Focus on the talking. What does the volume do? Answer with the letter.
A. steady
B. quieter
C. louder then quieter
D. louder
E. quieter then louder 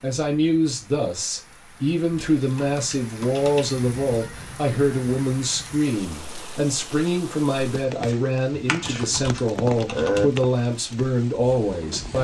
A.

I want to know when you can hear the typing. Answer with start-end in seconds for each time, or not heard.
2.1-3.8, 8.5-10.2.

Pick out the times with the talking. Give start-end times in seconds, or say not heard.
0.0-12.1.